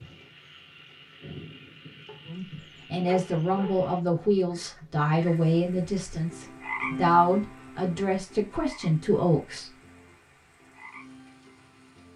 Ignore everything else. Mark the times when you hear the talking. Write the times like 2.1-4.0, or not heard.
2.2-9.7.